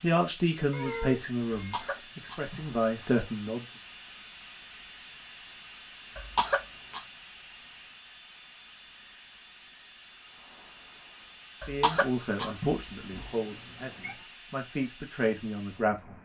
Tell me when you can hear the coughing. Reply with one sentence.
The coughing can be heard from 1.5 to 2.8 s, from 6.2 to 7.0 s and from 11.6 to 13.2 s.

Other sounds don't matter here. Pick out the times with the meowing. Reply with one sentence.
You can hear the meowing from 0.7 to 2.0 s and from 13.2 to 14.2 s.